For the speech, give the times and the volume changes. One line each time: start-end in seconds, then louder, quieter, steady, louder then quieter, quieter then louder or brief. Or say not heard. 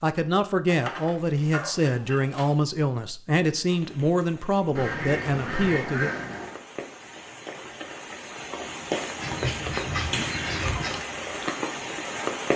0.0-6.1 steady.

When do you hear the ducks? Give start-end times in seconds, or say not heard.
0.7-2.5, 4.8-6.6, 9.2-11.0.